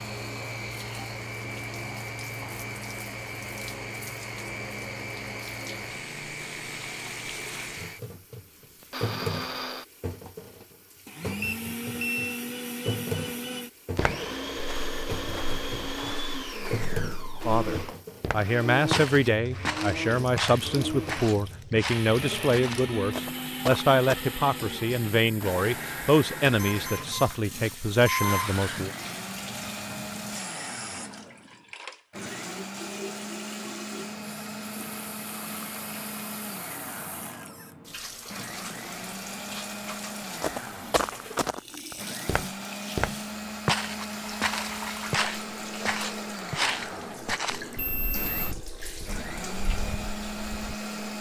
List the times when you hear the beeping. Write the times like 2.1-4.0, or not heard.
11.4-12.3, 26.6-28.5, 47.5-48.5.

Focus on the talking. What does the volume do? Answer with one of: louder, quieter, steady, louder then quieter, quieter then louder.
steady.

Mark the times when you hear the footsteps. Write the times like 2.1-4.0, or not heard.
13.9-24.2, 40.4-50.8.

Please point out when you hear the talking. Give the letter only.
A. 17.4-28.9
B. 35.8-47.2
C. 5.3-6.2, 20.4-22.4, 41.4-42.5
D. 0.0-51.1
A.